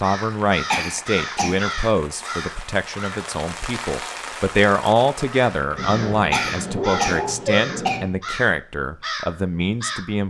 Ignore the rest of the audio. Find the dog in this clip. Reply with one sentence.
The dog can be heard from 5.8 to 8.1 s.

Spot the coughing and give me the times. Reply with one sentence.
The coughing can be heard from 0.7 to 1.6 s and from 6.3 to 8.0 s.